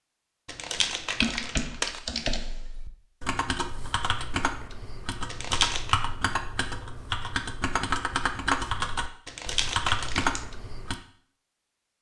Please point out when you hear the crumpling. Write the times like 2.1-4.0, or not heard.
0.5-2.0, 5.3-6.0, 9.2-10.4.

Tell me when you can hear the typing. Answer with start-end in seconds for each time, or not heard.
0.8-10.9.